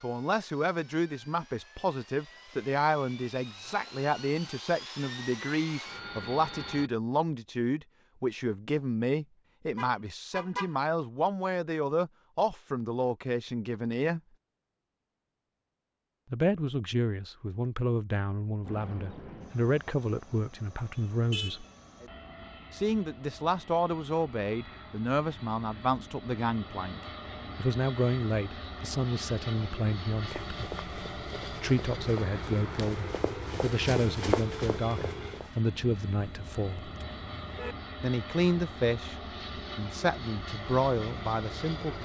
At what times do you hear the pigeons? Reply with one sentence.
The pigeons can't be heard in this clip.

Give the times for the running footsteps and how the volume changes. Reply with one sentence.
The running footsteps can be heard from 30.2 to 35.6 s, getting louder.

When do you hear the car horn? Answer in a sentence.
The car horn can be heard from 9.8 to 10.7 s, from 20.9 to 22.1 s and from 35.7 to 37.8 s.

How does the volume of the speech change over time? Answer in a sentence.
The loudness of the speech stays about the same.